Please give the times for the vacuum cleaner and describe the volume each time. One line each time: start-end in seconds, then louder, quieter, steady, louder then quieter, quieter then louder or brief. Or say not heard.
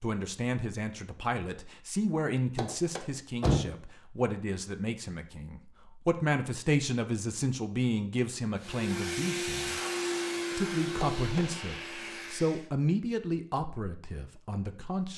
8.6-12.7 quieter.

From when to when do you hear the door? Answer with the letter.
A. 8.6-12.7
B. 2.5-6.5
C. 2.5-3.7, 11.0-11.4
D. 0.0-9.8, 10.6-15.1
C.